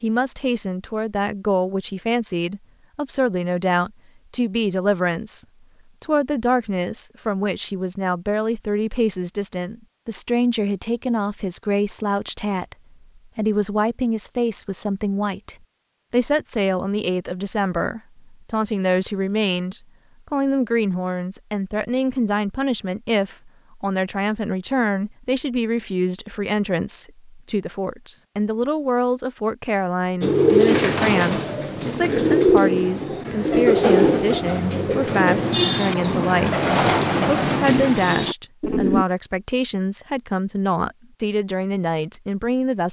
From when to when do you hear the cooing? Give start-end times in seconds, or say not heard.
30.2-39.0.